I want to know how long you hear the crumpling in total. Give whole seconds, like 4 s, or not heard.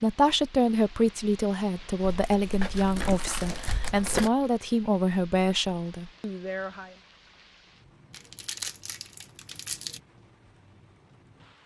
4 s.